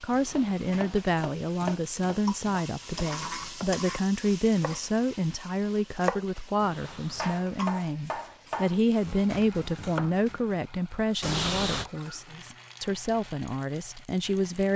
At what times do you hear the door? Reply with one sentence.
You can hear the door from 0.1 to 1.1 s, from 6.5 to 7.5 s and from 11.2 to 11.9 s.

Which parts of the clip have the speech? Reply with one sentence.
You can hear the speech from 0.0 to 14.7 s.